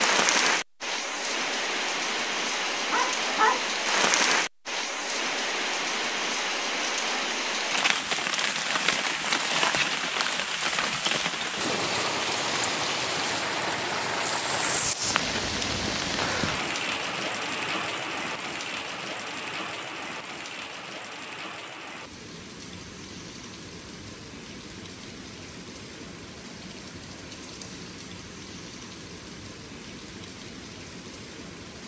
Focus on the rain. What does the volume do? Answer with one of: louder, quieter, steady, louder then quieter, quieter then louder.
quieter.